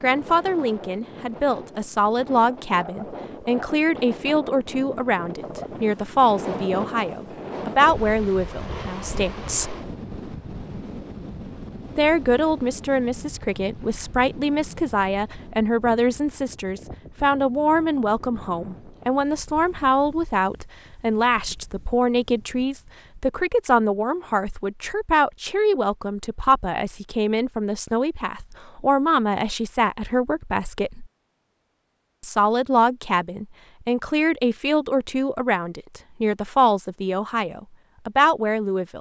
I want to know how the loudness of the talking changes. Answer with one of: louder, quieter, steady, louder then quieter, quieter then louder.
steady.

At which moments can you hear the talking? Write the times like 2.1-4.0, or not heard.
0.0-9.8, 11.9-31.1, 32.2-38.9.